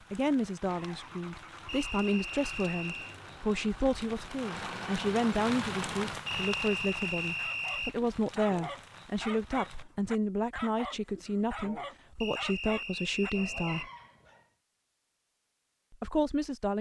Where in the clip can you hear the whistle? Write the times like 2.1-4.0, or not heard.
1.6-3.1, 6.2-8.0, 12.2-13.8.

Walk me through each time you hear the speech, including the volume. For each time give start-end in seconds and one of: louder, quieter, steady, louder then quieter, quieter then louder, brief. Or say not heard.
0.1-13.9 steady
15.9-16.7 brief.